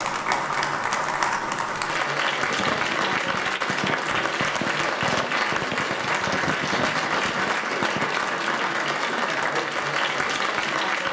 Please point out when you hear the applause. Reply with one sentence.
You can hear the applause from 0.0 to 11.0 s.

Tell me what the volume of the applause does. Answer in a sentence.
The volume of the applause stays about the same.